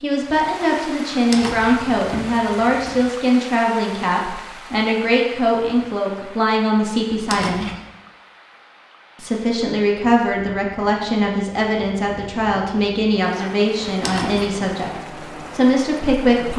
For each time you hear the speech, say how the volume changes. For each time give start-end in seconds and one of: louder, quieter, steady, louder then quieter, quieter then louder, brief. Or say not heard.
0.0-7.7 steady
9.2-16.5 steady.